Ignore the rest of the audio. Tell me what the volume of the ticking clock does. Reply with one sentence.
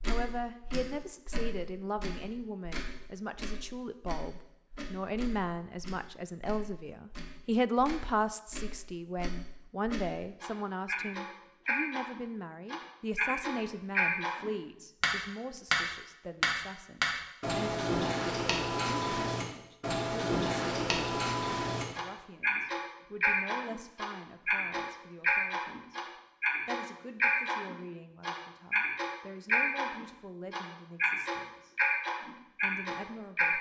The loudness of the ticking clock goes up.